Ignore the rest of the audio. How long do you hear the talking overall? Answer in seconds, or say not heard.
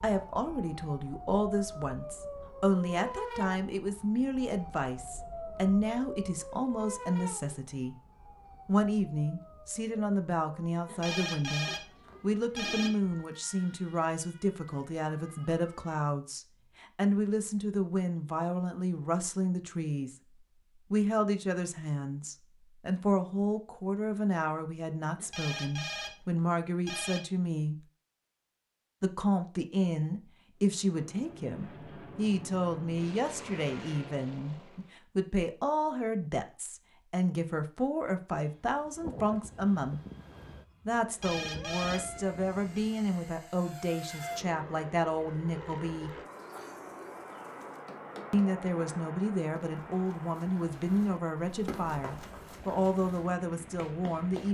49 s.